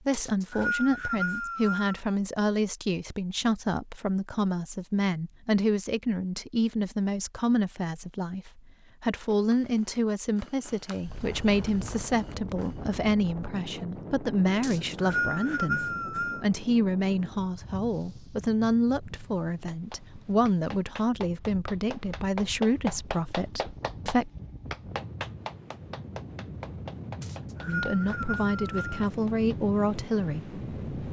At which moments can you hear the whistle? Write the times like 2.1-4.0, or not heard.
0.1-2.0, 14.6-16.4, 27.2-29.1.